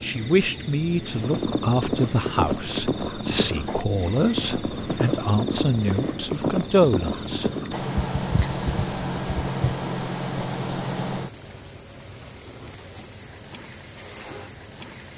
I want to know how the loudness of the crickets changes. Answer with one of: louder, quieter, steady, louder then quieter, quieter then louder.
steady.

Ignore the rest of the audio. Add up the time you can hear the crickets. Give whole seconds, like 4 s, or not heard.
15 s.